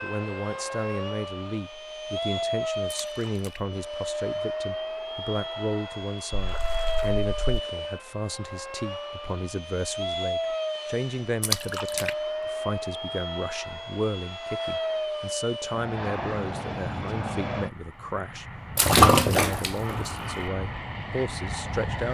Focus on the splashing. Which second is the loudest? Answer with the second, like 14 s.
19 s.